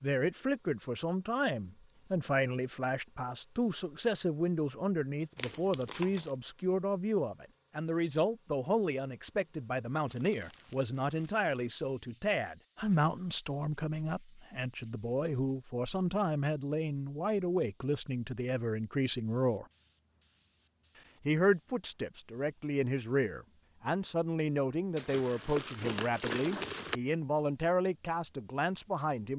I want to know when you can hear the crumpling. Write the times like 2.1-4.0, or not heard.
5.3-6.3, 10.1-11.5, 24.9-27.0.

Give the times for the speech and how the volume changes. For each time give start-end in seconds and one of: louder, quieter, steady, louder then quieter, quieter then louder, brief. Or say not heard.
0.0-19.6 steady
21.2-29.3 steady.